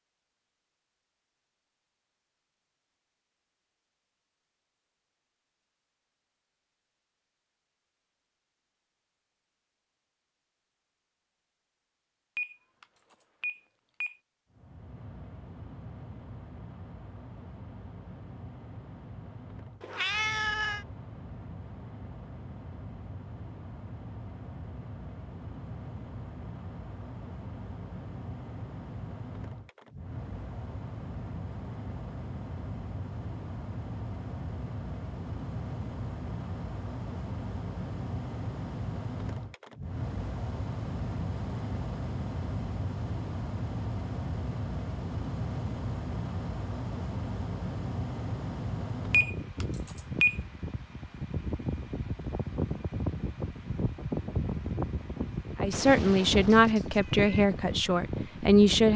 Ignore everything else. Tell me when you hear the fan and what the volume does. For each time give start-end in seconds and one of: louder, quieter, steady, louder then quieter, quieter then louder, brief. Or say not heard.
14.5-58.9 louder.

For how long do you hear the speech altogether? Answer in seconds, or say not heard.
3 s.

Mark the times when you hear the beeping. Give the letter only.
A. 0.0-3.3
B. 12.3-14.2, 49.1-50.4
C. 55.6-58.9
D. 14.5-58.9
B.